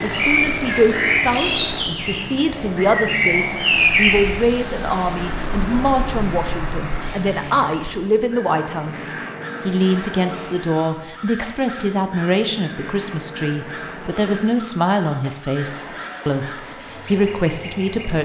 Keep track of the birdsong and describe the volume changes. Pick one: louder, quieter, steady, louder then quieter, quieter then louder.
quieter.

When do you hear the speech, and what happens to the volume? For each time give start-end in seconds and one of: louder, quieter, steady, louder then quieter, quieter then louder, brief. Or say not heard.
0.0-18.2 steady.